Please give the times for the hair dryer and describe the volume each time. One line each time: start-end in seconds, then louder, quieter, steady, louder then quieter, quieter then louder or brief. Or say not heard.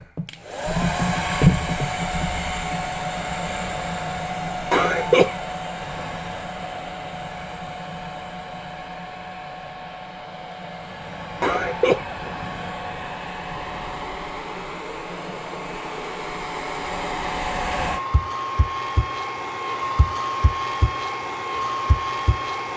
0.0-22.7 quieter then louder.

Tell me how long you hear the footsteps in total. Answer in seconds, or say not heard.
not heard.